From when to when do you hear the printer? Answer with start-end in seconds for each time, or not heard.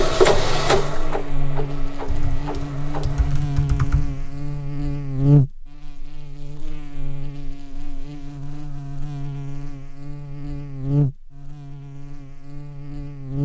0.0-3.3.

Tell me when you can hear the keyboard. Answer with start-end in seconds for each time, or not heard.
2.0-4.6.